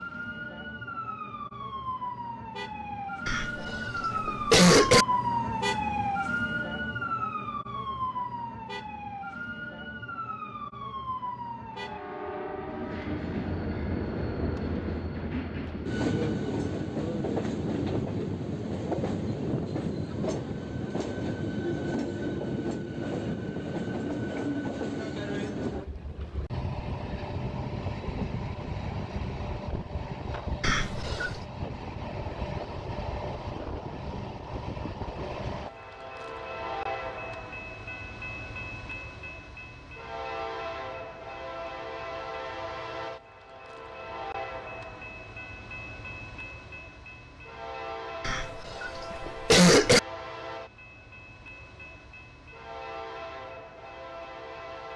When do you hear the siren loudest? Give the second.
5 s.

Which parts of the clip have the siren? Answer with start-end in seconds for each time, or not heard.
0.0-12.0.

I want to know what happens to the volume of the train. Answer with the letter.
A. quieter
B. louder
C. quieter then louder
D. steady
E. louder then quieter
A.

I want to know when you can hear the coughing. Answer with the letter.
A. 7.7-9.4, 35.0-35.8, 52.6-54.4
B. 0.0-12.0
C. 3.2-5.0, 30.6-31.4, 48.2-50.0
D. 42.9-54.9
C.